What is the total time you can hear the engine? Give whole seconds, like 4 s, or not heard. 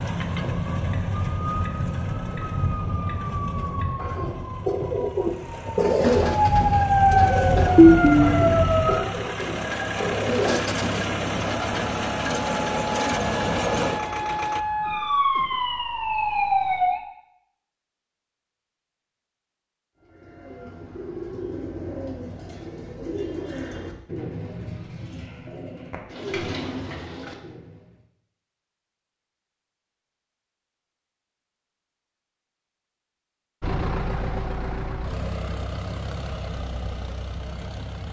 19 s.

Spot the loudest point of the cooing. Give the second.
6 s.